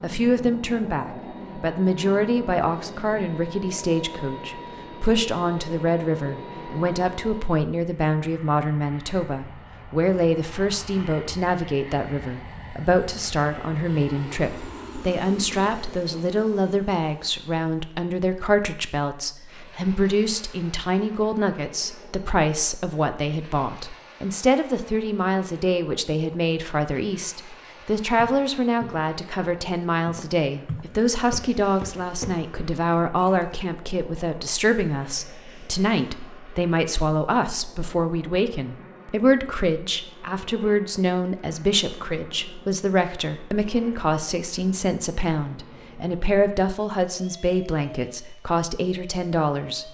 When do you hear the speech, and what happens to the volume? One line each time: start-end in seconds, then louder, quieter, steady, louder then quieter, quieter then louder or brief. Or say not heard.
0.0-49.8 steady.